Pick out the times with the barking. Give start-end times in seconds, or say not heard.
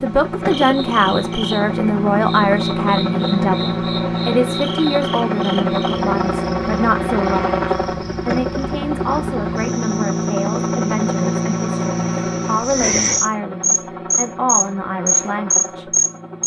not heard.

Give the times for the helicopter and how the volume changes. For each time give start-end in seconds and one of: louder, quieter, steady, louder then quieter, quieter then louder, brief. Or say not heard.
0.0-16.4 quieter.